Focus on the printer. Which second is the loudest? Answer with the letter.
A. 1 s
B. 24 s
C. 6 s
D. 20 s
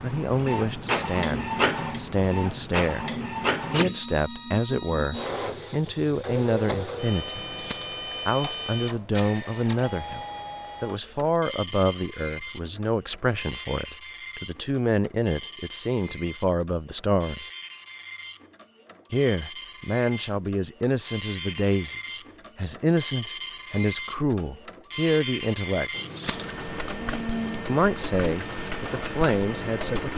A.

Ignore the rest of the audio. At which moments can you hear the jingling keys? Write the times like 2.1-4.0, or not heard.
7.3-8.1, 25.9-27.6.